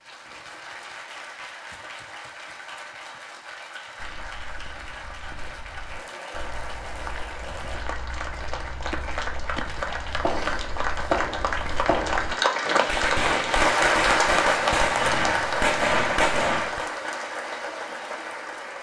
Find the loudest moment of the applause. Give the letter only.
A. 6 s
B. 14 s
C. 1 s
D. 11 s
B.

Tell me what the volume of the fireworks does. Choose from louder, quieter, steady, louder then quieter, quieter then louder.
louder.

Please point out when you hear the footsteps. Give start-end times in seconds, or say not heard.
4.0-13.8.